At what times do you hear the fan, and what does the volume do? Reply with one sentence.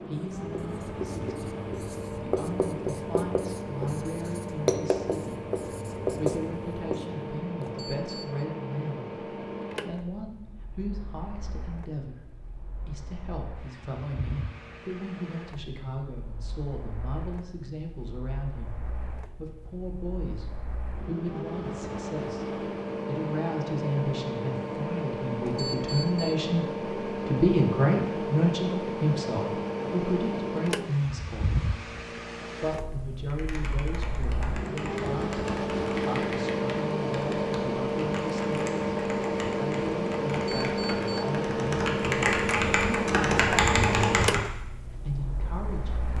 You can hear the fan from 0.0 to 46.1 s, getting quieter then louder.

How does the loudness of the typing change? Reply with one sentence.
The loudness of the typing goes up.